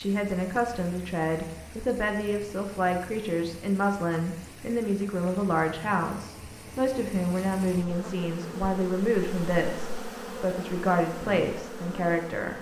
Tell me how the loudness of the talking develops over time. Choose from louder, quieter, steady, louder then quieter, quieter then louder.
steady.